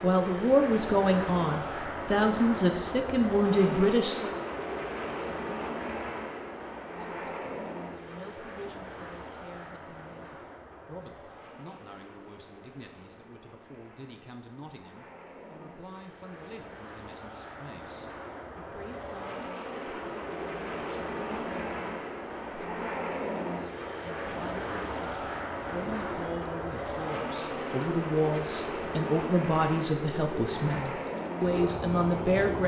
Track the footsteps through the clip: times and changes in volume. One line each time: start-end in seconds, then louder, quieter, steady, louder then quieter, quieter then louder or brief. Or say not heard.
not heard.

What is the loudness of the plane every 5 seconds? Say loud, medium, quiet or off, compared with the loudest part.
loud, loud, quiet, medium, loud, loud, loud.